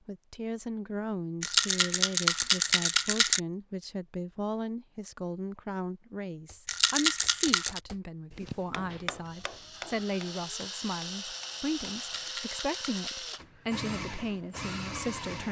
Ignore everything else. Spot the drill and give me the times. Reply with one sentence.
You can hear the drill from 9.2 to 15.4 s.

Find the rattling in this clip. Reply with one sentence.
You can hear the rattling from 1.4 to 3.4 s, from 6.7 to 7.8 s and from 12.2 to 13.2 s.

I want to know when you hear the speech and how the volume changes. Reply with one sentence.
You can hear the speech from 0.1 to 15.4 s, at a steady volume.